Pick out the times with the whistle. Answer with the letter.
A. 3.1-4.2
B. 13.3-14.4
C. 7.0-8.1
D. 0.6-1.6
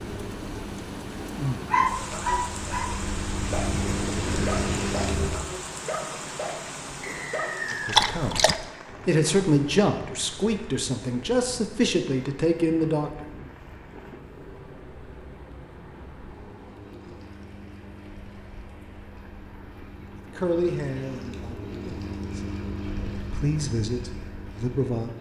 C.